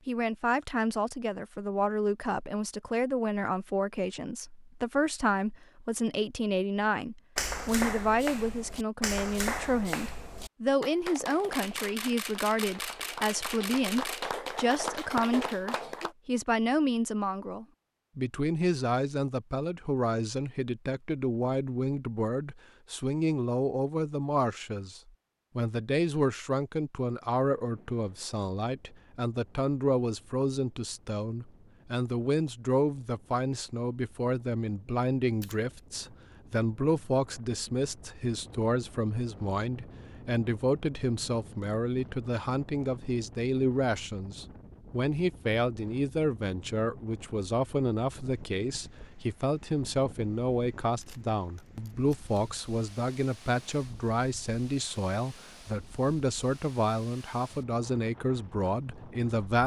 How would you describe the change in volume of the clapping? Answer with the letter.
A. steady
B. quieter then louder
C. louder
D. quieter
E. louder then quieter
B.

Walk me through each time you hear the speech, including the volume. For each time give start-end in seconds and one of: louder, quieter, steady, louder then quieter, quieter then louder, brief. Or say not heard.
0.1-59.6 steady.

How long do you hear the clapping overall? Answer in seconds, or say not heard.
9 s.